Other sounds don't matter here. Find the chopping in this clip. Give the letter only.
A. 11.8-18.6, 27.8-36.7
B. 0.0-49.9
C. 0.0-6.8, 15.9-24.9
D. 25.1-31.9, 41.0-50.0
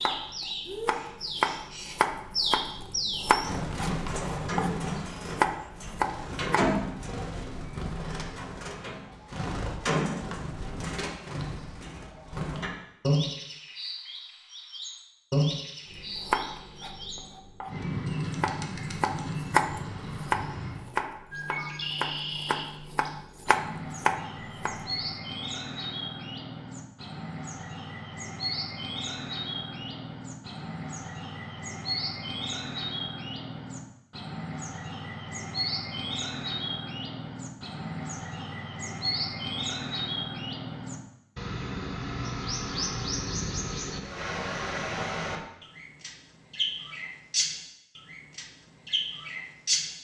C.